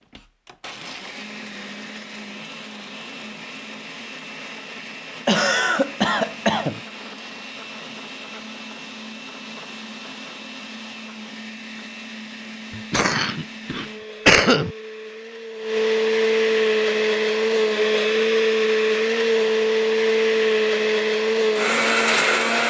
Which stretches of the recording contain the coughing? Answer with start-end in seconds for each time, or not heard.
5.2-6.8, 12.7-14.8.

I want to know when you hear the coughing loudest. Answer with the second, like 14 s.
14 s.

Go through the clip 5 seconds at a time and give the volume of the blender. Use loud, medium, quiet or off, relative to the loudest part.
quiet, quiet, quiet, loud, loud.